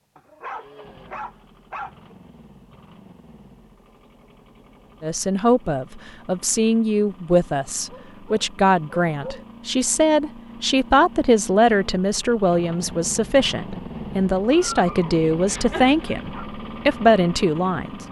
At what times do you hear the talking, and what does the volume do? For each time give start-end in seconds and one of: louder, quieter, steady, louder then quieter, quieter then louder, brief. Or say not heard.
5.0-18.0 steady.